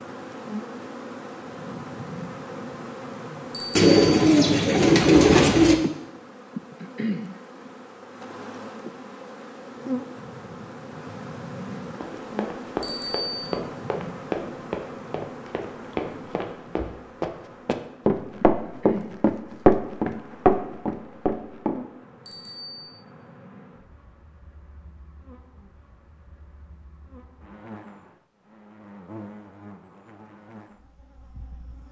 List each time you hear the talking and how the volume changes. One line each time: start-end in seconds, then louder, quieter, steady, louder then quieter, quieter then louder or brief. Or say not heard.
not heard.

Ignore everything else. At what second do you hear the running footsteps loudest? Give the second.
20 s.